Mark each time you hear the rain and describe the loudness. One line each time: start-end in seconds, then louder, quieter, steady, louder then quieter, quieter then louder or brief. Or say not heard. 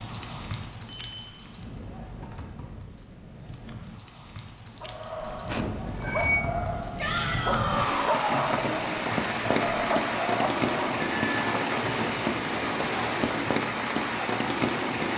0.0-15.1 louder.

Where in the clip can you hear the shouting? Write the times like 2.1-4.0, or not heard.
7.0-8.6.